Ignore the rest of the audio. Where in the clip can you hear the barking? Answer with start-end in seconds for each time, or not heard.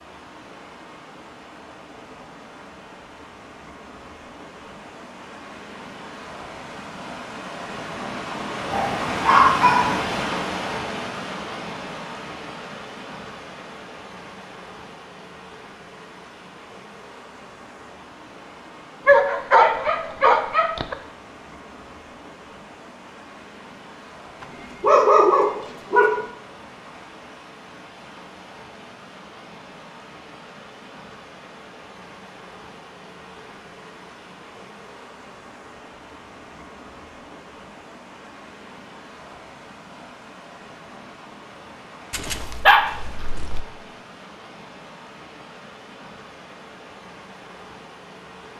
8.7-10.2, 19.1-20.9, 24.4-26.2, 42.1-43.6.